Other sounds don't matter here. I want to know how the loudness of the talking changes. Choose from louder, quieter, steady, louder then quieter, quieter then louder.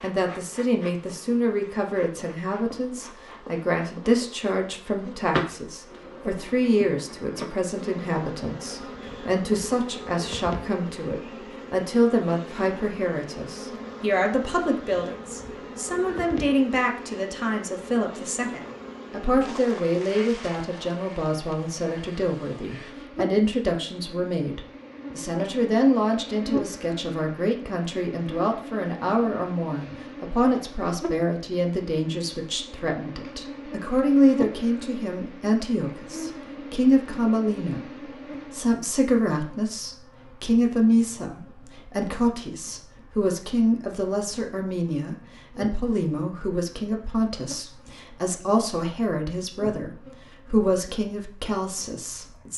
steady.